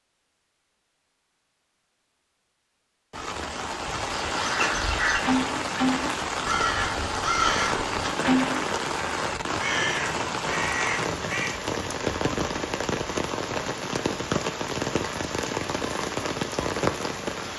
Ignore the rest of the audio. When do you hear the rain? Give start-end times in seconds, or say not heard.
3.1-17.5.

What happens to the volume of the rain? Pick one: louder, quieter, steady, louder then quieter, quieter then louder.
steady.